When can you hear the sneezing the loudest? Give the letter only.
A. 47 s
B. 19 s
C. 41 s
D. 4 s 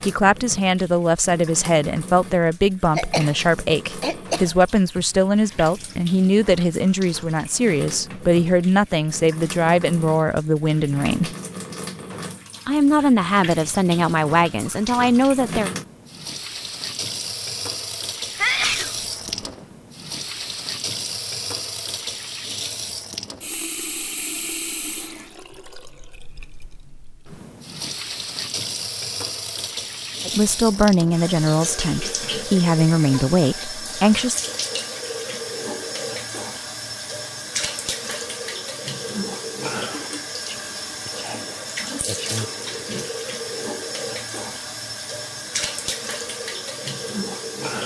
B.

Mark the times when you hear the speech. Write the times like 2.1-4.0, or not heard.
0.0-11.3, 12.7-15.7, 30.2-34.4.